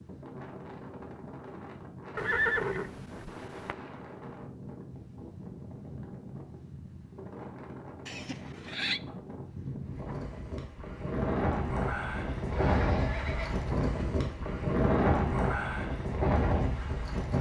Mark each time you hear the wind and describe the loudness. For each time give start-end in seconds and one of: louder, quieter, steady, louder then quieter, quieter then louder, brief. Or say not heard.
0.0-17.3 louder.